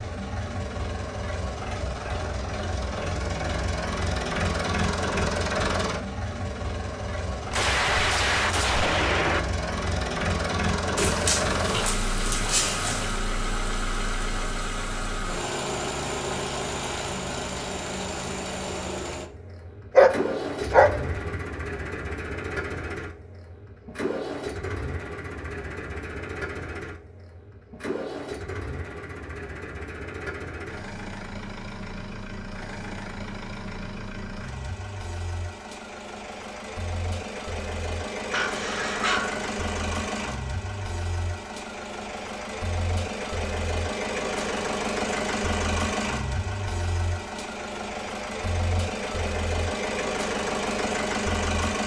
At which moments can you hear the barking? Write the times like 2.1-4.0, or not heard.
10.9-13.2, 19.9-21.4, 38.3-39.5.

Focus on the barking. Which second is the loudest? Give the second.
20 s.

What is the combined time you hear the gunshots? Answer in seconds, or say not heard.
2 s.